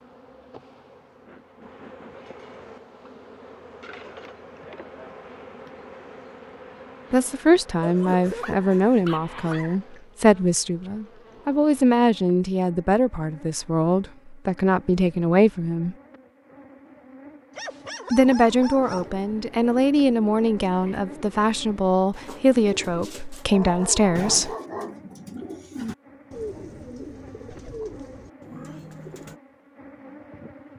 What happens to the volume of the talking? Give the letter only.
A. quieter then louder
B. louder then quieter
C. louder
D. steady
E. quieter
D.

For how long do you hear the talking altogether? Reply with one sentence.
You can hear the talking for 15 seconds altogether.